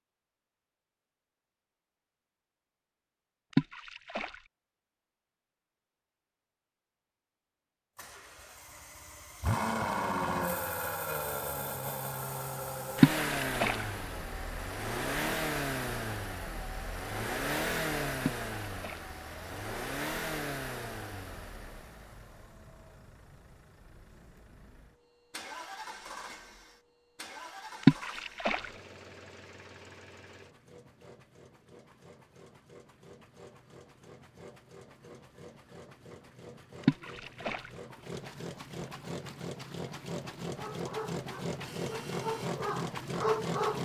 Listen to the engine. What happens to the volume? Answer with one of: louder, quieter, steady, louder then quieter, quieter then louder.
quieter then louder.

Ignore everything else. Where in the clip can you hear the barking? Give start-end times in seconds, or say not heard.
40.5-43.7.